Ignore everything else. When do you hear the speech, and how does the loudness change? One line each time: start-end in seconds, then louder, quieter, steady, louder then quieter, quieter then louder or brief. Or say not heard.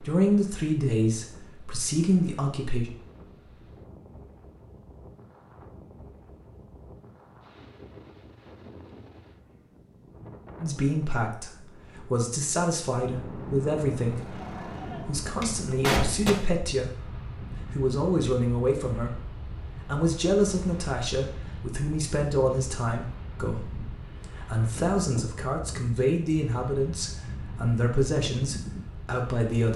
0.0-2.9 brief
10.6-29.7 steady.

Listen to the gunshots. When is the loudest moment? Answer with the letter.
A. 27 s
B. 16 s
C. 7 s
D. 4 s
B.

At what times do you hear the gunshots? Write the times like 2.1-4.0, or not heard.
14.4-16.3.